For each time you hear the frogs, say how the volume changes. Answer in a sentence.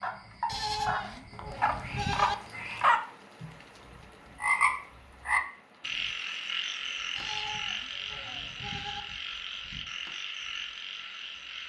You can hear the frogs from 0.0 to 11.6 s, getting louder then quieter.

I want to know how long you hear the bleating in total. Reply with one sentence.
The bleating can be heard for 4 seconds in total.